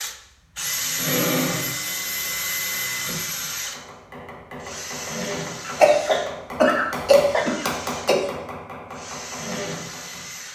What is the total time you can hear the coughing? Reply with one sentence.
The coughing can be heard for 3 seconds in total.